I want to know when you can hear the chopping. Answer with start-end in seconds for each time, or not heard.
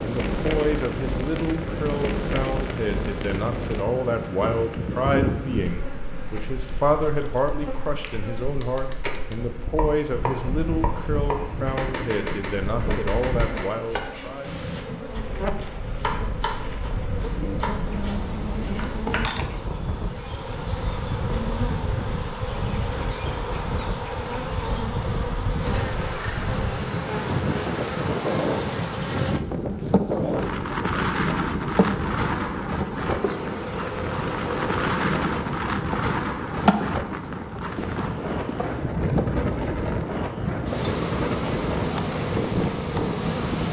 8.1-19.6.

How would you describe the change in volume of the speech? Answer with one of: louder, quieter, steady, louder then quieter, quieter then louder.
steady.